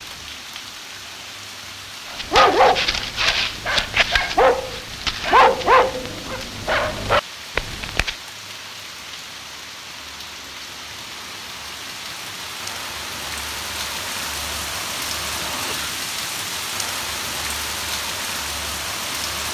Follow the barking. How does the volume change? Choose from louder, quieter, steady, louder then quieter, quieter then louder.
steady.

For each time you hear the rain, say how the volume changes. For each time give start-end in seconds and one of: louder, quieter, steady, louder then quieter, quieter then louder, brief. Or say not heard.
0.0-19.4 louder.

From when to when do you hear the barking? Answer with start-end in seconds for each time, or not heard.
2.1-8.2.